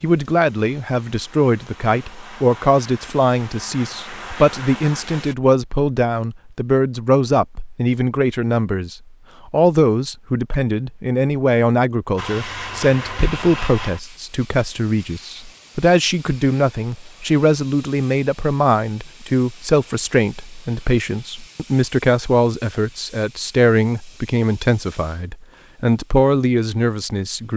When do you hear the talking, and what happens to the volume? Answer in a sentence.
You can hear the talking from 0.0 to 27.5 s, at a steady volume.